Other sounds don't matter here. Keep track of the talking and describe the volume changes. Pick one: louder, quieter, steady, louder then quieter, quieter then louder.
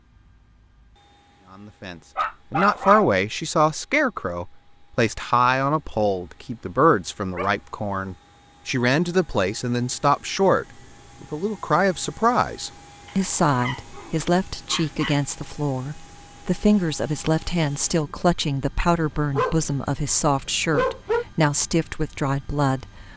steady.